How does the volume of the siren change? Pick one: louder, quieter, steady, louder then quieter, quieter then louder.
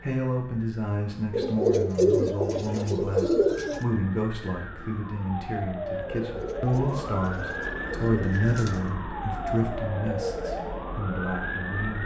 louder.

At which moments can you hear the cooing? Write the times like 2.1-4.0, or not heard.
1.3-3.8, 6.2-8.9.